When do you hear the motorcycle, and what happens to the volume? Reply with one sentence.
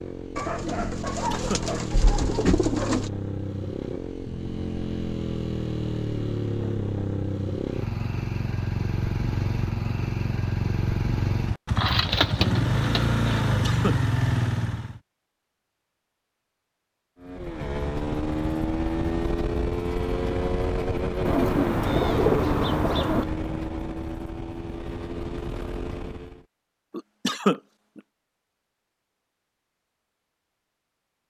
The motorcycle can be heard from 0.0 to 15.0 s, getting louder; and from 17.2 to 26.4 s, getting quieter.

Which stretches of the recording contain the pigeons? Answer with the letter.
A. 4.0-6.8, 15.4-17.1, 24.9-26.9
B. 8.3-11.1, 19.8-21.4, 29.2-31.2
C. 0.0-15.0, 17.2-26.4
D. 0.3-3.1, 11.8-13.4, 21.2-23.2
D.